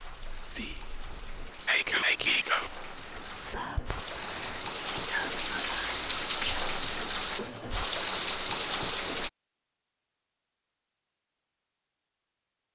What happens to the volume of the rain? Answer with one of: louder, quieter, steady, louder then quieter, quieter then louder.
louder.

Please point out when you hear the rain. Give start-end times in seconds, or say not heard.
0.0-9.3.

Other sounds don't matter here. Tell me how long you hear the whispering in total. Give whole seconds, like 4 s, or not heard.
7 s.